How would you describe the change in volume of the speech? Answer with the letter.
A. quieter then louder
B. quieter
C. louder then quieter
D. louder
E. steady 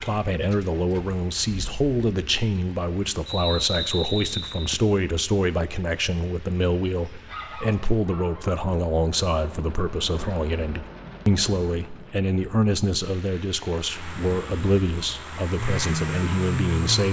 E.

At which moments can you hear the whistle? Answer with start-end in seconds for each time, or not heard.
3.2-4.6.